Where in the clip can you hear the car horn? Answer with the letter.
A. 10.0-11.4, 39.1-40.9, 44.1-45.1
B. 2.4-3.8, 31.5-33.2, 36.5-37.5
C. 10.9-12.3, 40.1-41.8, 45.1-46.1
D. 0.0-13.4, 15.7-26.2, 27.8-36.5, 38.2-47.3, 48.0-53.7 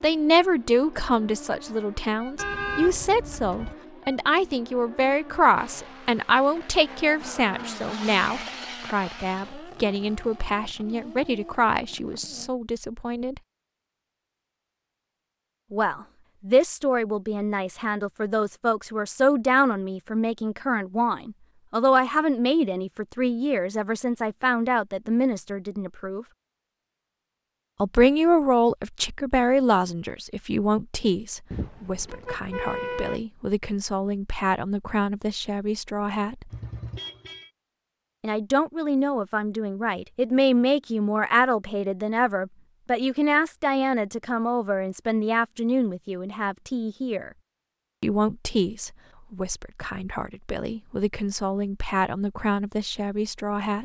B.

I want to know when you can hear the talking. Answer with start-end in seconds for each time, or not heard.
0.0-13.4, 15.7-26.2, 27.8-36.5, 38.2-47.3, 48.0-53.7.